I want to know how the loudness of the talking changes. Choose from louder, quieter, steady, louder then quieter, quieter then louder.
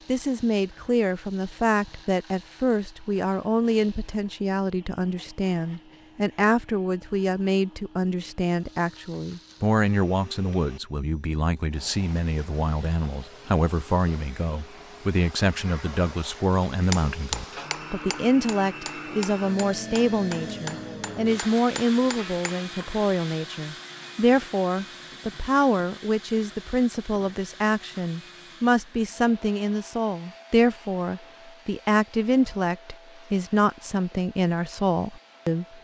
steady.